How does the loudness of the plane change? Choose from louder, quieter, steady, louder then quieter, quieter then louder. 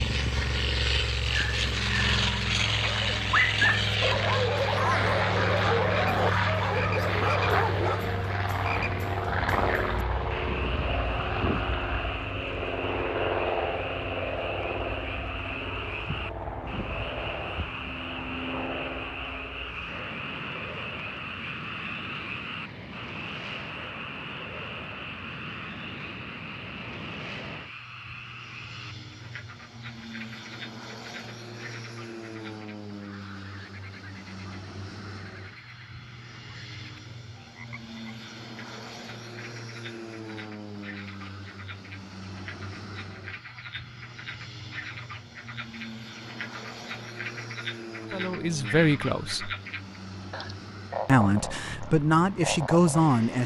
quieter.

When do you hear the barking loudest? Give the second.
4 s.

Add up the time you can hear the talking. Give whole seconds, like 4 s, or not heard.
4 s.